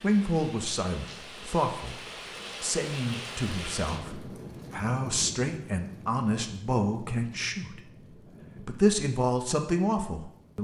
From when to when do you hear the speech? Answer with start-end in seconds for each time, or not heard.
0.0-7.8, 8.6-10.5.